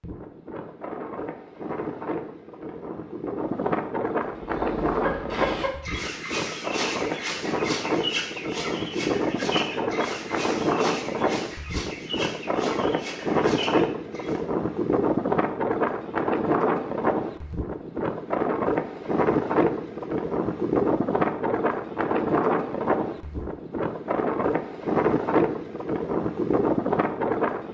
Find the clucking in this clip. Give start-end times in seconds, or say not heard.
4.4-14.4.